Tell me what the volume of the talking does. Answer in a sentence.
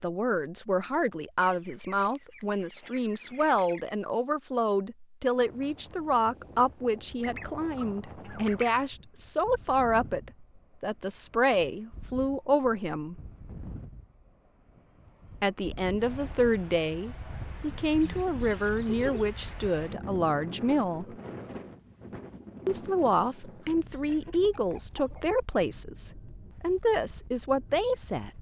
The volume of the talking stays about the same.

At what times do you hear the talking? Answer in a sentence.
The talking can be heard from 0.0 to 13.2 s, from 15.4 to 21.1 s and from 22.6 to 28.3 s.